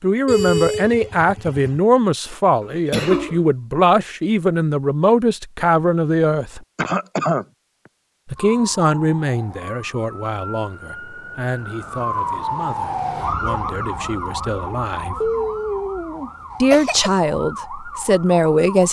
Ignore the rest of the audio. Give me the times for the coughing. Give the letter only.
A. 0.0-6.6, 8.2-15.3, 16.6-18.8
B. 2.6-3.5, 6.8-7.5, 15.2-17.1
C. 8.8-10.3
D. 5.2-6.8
B.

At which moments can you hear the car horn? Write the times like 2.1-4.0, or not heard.
0.2-1.8.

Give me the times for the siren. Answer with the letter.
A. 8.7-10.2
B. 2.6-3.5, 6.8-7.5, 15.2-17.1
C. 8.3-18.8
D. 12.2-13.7
C.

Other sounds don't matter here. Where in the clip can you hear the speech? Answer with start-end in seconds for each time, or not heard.
0.0-6.6, 8.2-15.3, 16.6-18.8.